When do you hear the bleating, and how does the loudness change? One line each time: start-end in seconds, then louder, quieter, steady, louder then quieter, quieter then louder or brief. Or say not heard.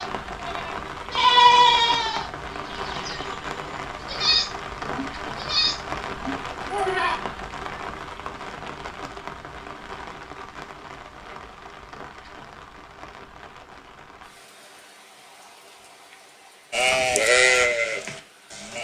0.0-7.2 quieter then louder
16.7-18.7 brief.